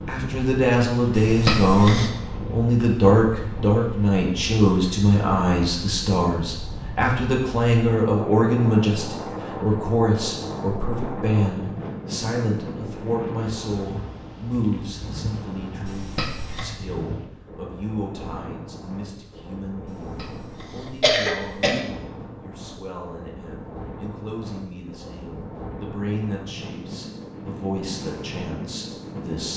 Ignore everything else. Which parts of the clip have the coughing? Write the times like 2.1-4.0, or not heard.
1.1-2.1, 15.8-16.8, 20.1-21.8.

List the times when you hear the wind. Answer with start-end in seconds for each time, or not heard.
0.0-29.5.